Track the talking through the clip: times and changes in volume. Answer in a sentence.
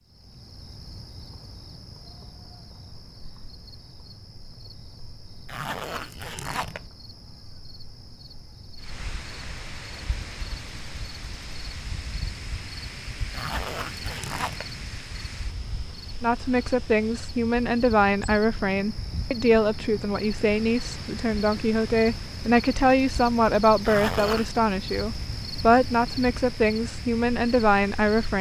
You can hear the talking from 16.2 to 28.3 s, at a steady volume.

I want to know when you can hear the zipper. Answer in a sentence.
The zipper can be heard from 5.5 to 6.9 s, from 13.3 to 14.8 s and from 23.8 to 24.5 s.